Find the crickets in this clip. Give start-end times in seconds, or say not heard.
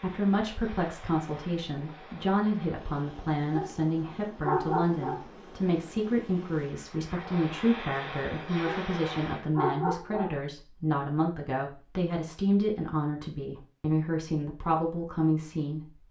not heard.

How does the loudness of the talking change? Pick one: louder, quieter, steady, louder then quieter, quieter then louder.
steady.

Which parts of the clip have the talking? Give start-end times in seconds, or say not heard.
0.0-16.0.